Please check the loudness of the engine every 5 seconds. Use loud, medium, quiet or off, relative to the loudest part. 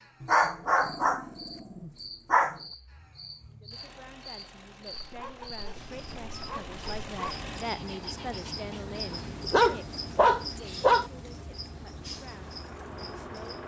medium, loud, loud.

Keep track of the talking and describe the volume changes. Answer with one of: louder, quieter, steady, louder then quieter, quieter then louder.
louder then quieter.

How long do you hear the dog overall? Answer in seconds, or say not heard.
7 s.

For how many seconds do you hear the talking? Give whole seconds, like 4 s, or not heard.
10 s.